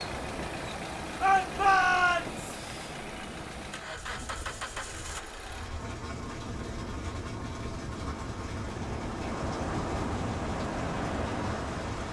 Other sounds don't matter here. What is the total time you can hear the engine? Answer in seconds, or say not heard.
12 s.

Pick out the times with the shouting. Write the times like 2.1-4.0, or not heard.
1.2-2.5.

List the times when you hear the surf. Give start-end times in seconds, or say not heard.
0.0-12.0.